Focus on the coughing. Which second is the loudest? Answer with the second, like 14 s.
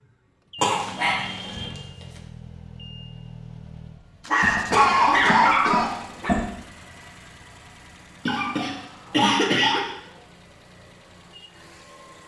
5 s.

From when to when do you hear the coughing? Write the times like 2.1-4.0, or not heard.
0.6-1.7, 4.4-6.5, 8.2-9.8.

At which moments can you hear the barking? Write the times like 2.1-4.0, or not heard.
0.7-2.0, 4.2-6.3, 8.2-9.8.